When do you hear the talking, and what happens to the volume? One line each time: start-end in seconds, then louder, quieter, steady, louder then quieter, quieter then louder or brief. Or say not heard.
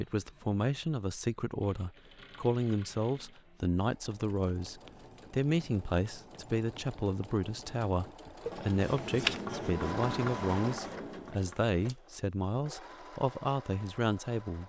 0.0-14.6 steady.